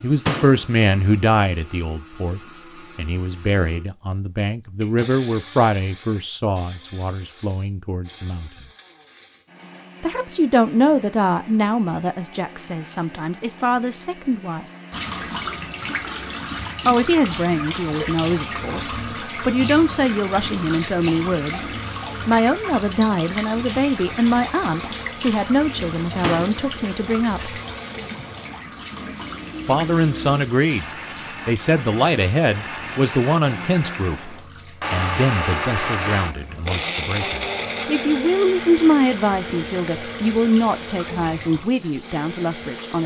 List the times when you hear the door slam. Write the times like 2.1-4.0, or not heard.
0.2-0.7, 26.2-26.6.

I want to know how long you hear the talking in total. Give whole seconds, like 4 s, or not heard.
37 s.